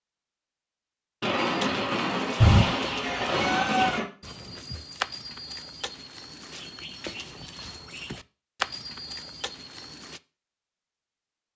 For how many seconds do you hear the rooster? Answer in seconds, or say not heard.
2 s.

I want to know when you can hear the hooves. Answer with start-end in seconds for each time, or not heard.
1.4-10.2.